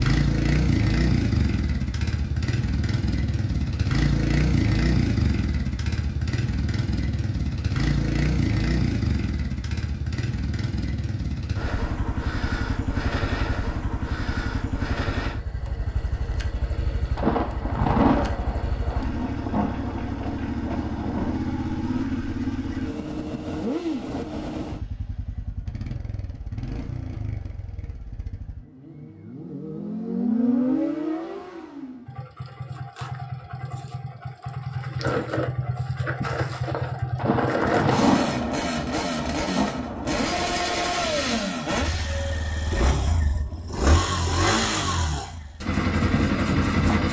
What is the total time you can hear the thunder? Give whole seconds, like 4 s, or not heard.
7 s.